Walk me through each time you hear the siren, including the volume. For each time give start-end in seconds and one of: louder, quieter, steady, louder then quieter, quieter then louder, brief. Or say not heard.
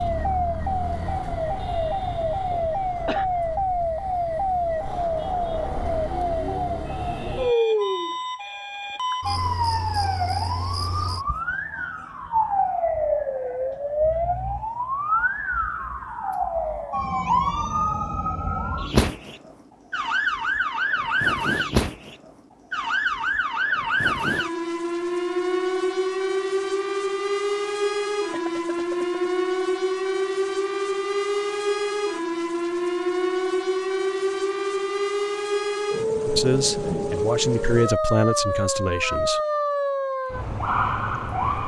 0.0-41.6 steady.